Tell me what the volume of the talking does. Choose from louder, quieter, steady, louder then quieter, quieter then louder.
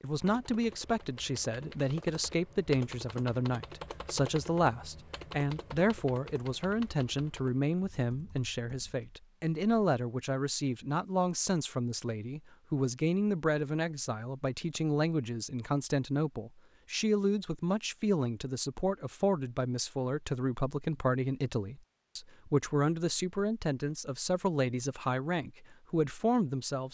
steady.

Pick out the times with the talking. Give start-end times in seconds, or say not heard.
0.0-26.9.